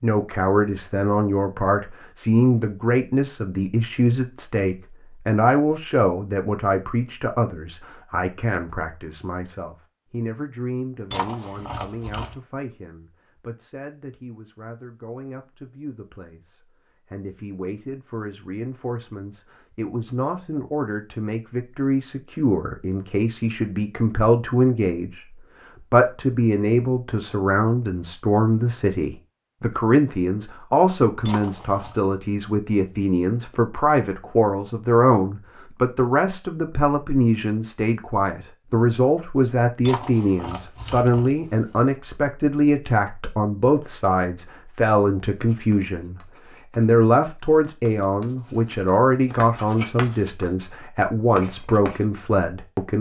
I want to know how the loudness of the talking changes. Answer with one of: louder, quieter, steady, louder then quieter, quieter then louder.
quieter then louder.